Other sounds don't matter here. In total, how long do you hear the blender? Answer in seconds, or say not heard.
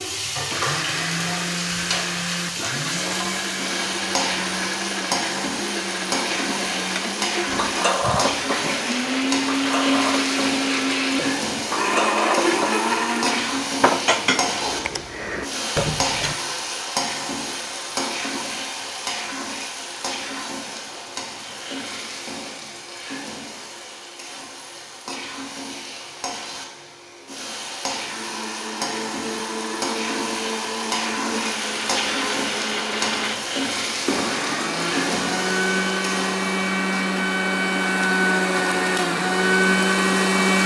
26 s.